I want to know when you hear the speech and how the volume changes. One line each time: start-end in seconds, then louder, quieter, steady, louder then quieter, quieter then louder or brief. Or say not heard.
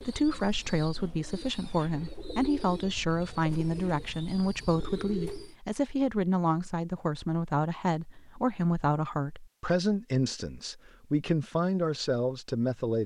0.0-13.0 steady.